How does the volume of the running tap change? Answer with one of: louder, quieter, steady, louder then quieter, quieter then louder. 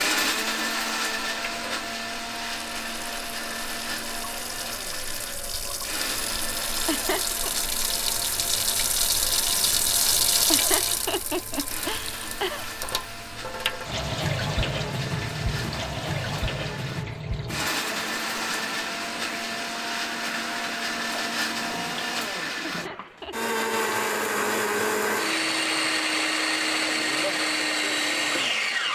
louder then quieter.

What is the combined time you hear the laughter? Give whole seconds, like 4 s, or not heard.
4 s.